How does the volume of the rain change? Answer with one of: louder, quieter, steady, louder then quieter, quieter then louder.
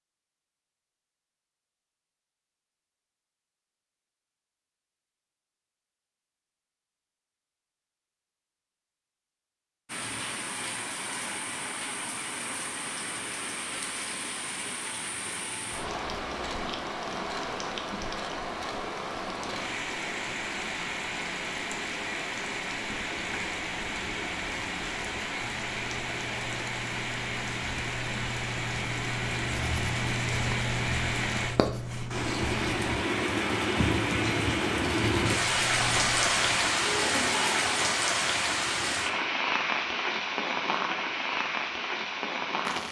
louder.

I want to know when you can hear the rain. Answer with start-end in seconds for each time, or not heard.
9.8-42.8.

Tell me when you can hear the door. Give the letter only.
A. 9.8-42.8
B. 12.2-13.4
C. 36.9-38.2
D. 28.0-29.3
C.